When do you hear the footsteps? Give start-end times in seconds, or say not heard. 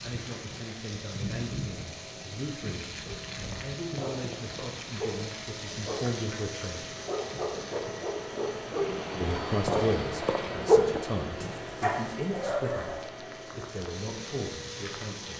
not heard.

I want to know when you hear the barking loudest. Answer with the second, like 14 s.
11 s.